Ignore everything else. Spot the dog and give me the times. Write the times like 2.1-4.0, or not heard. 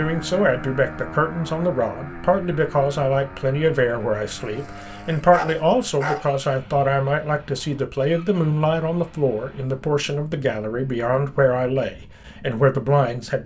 4.5-6.2.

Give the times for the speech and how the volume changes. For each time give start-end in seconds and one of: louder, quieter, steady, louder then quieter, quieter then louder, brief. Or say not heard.
0.0-13.4 steady.